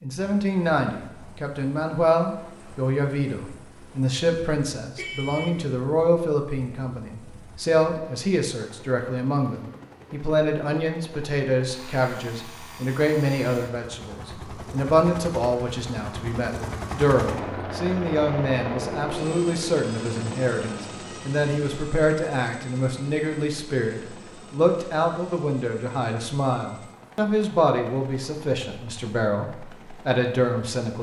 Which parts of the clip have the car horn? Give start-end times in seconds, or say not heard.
5.0-5.5.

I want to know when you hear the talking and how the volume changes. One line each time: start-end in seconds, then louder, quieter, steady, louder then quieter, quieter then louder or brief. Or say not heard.
0.0-30.9 steady.